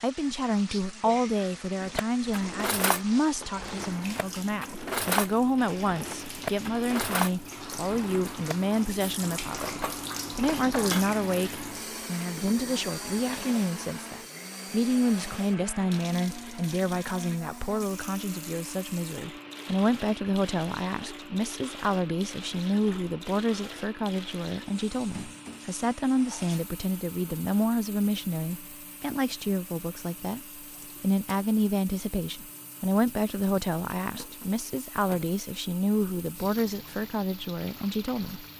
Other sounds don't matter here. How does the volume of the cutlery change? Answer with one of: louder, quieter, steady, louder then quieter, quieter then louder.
quieter.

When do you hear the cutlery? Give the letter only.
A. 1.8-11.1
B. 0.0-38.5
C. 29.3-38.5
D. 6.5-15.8
A.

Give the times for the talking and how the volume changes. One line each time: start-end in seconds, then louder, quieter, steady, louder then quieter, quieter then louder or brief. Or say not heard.
0.0-38.5 steady.